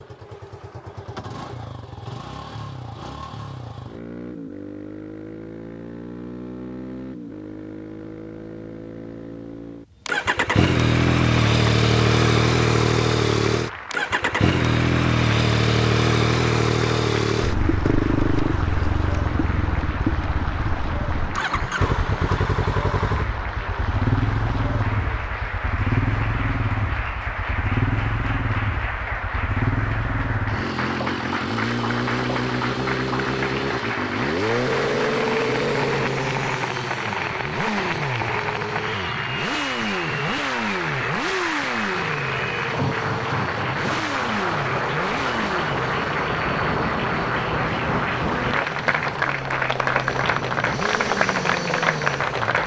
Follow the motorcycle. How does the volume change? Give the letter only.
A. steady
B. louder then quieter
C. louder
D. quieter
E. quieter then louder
B.